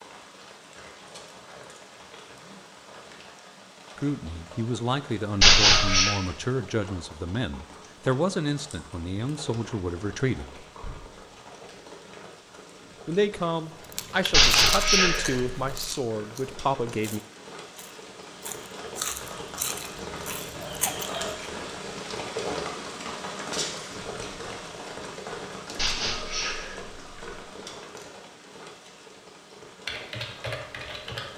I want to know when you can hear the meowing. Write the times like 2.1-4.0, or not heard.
5.4-6.2, 14.3-15.8, 25.8-27.4.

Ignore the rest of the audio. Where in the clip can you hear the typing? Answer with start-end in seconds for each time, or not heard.
29.9-31.3.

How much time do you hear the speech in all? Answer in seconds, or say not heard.
11 s.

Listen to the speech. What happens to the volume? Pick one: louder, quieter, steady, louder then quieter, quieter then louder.
steady.